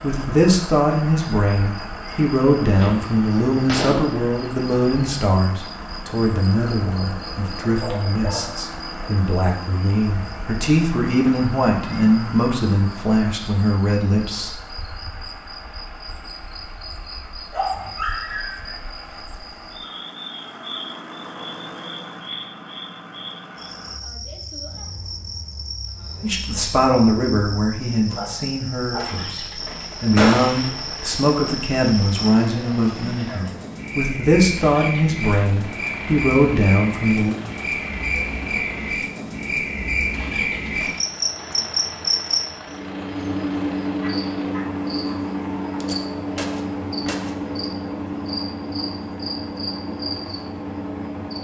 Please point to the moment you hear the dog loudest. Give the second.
18 s.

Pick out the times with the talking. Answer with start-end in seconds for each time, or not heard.
0.0-14.6, 26.2-37.4.